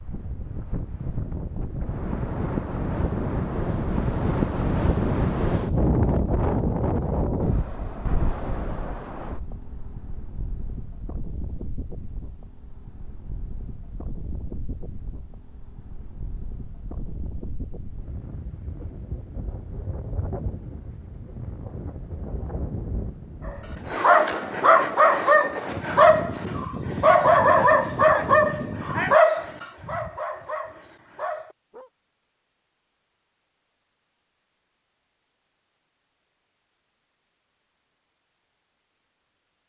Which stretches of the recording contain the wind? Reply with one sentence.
The wind can be heard from 0.0 to 29.2 s.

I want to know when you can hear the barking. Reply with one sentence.
You can hear the barking from 23.4 to 31.9 s.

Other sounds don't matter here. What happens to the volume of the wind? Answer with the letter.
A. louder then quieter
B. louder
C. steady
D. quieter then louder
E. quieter
D.